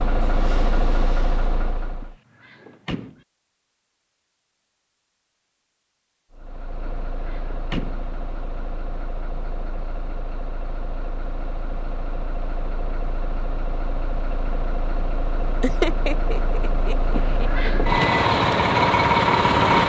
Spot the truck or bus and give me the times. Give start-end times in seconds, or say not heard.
0.0-2.1, 6.3-19.8.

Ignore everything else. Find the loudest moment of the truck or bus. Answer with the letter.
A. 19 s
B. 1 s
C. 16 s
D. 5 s
A.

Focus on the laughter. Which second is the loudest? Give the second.
16 s.